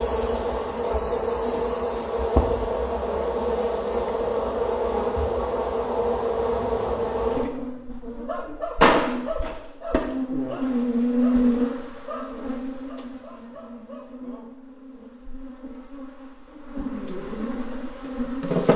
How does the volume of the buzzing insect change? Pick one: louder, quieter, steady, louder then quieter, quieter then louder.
quieter.